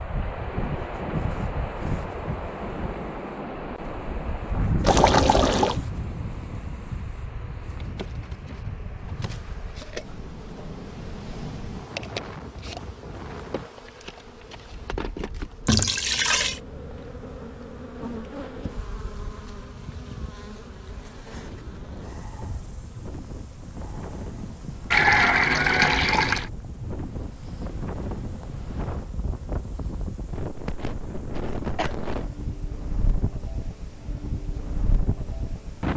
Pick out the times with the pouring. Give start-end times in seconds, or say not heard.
4.8-5.8, 15.7-16.6, 24.9-26.5.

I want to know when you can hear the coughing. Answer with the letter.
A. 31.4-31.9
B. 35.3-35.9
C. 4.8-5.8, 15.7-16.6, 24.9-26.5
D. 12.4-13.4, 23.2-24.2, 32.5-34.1
A.